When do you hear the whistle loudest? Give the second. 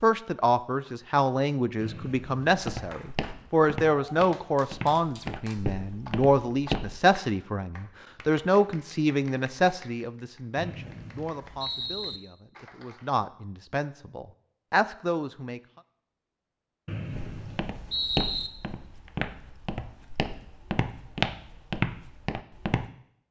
18 s.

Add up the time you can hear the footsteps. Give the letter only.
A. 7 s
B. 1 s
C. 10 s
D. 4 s
C.